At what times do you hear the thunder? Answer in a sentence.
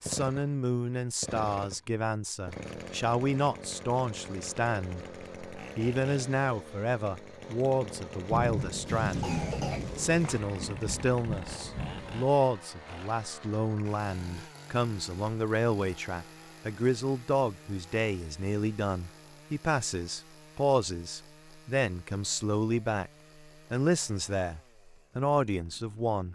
You can hear the thunder from 8.3 to 12.2 s.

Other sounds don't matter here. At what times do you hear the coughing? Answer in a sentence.
You can hear the coughing from 8.8 to 10.4 s.